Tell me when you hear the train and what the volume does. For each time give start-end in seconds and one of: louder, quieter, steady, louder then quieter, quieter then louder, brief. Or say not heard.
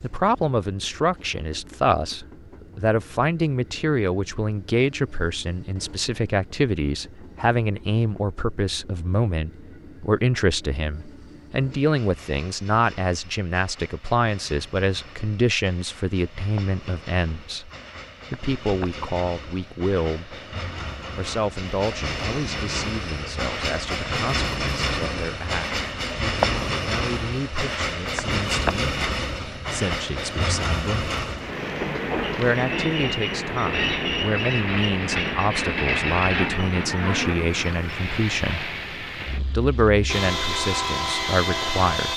0.0-42.1 louder.